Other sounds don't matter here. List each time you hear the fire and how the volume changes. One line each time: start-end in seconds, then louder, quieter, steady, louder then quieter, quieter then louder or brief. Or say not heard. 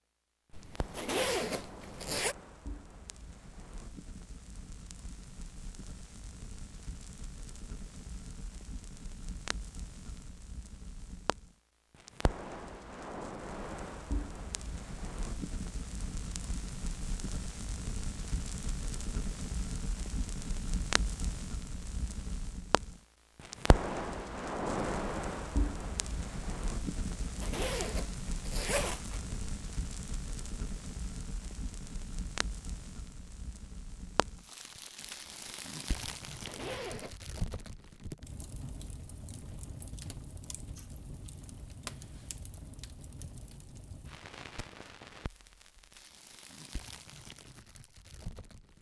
0.5-48.7 louder then quieter.